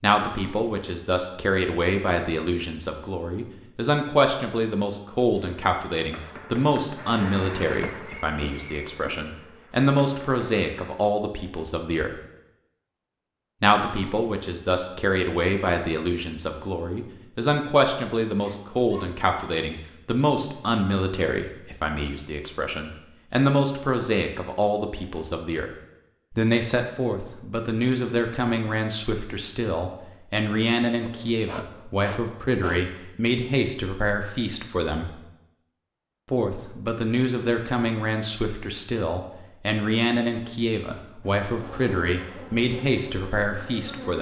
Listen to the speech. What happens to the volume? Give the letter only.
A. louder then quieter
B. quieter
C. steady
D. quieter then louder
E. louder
C.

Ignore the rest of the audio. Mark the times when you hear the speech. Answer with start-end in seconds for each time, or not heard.
0.0-12.1, 13.6-25.7, 26.3-35.1, 36.3-44.1.